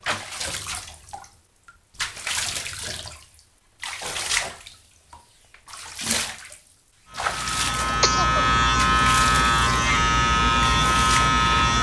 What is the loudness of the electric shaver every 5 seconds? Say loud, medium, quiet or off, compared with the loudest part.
off, loud, loud.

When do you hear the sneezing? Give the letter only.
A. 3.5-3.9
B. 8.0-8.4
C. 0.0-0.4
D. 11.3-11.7
B.